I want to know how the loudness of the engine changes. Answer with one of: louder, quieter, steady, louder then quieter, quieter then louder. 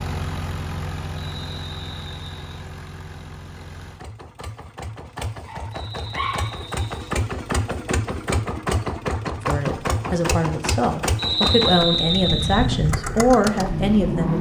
louder.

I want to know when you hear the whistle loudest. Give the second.
12 s.